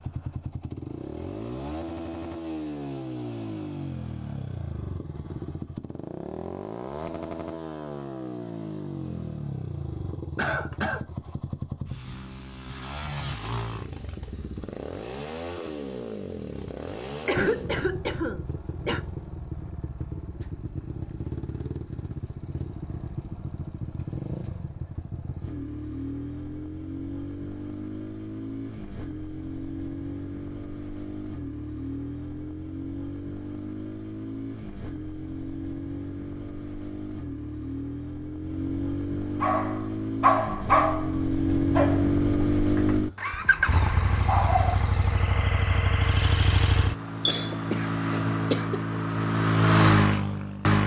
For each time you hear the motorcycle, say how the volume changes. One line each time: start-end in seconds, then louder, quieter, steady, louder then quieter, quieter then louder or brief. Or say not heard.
0.0-50.8 louder.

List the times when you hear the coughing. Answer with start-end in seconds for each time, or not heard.
10.3-11.1, 17.2-19.0, 47.2-48.8.